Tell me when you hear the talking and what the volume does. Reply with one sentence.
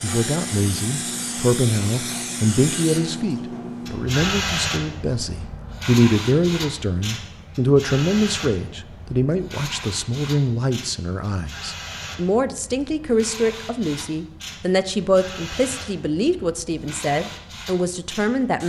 You can hear the talking from 0.0 to 18.6 s, at a steady volume.